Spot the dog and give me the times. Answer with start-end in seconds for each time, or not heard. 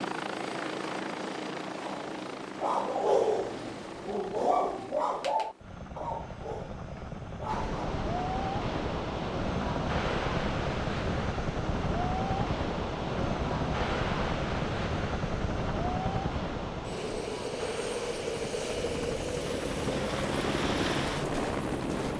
1.8-7.9.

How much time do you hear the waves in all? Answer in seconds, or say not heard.
15 s.